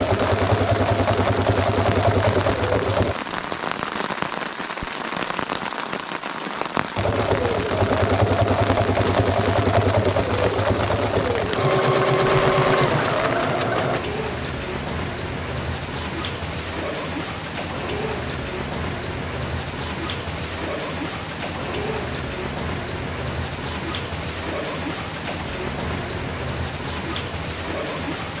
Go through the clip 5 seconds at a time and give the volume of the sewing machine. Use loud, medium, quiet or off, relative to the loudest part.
loud, loud, loud, off, off, off.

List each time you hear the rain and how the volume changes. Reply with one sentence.
You can hear the rain from 0.0 to 28.3 s, at a steady volume.